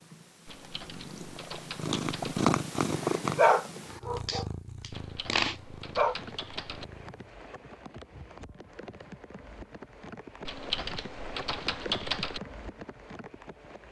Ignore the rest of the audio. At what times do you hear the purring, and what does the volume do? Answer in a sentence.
You can hear the purring from 0.0 to 7.3 s, getting louder then quieter.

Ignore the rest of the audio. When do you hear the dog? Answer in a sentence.
You can hear the dog from 3.4 to 6.2 s.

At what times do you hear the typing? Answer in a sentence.
You can hear the typing from 0.5 to 2.4 s, from 4.9 to 6.8 s and from 10.4 to 12.4 s.